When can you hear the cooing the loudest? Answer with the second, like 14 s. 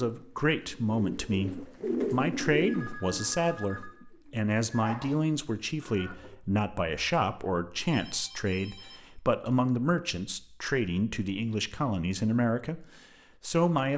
2 s.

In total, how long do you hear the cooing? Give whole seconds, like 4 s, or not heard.
6 s.